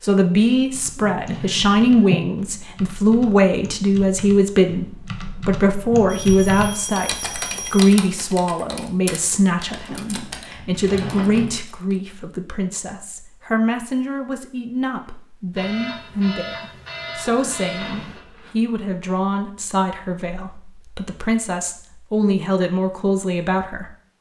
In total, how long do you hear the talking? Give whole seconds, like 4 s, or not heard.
24 s.